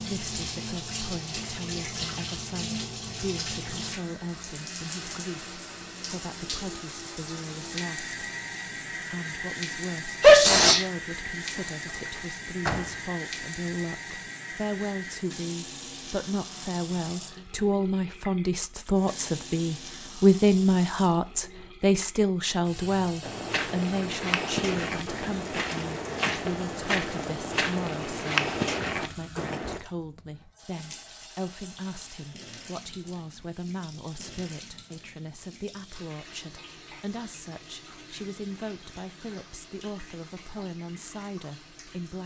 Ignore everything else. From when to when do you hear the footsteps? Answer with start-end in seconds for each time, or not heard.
23.2-29.8.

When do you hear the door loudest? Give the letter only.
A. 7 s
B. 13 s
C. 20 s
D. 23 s
B.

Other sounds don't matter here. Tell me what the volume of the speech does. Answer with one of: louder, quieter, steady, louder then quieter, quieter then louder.
louder then quieter.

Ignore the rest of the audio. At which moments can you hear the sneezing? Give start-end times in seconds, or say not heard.
10.2-10.8.